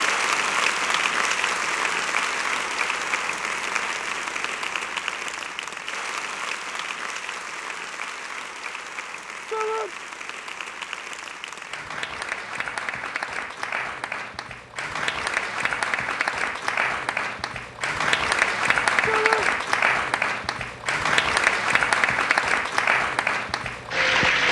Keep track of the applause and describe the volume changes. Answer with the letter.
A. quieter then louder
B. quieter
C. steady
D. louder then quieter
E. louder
A.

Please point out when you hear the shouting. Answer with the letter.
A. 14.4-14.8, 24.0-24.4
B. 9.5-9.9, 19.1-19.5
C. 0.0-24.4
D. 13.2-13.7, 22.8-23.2
B.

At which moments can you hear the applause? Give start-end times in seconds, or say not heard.
0.0-24.4.